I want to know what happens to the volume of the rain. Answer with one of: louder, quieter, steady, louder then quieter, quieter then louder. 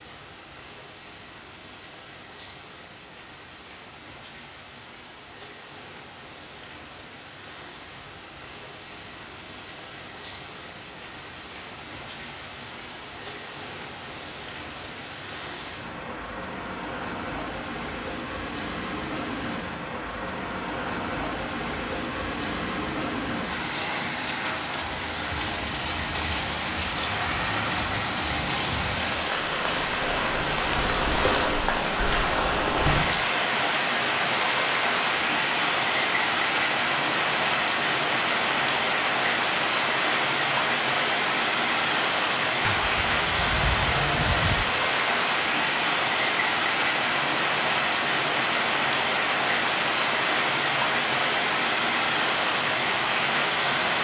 louder.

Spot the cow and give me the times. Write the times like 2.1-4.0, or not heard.
42.6-44.6.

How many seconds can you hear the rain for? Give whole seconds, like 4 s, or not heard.
54 s.